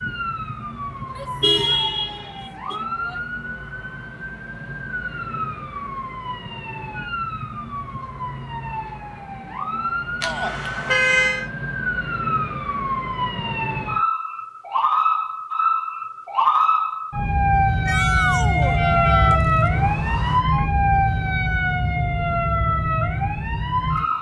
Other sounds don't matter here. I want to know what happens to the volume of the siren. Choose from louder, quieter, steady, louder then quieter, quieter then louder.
louder.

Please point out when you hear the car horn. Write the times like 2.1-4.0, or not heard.
1.4-2.8, 10.2-11.4, 18.6-20.4.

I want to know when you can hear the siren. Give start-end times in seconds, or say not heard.
0.0-24.1.